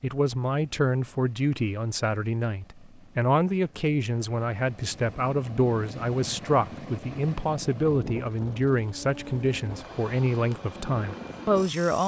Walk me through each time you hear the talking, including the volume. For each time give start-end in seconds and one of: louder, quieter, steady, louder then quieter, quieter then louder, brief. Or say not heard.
0.0-12.0 steady.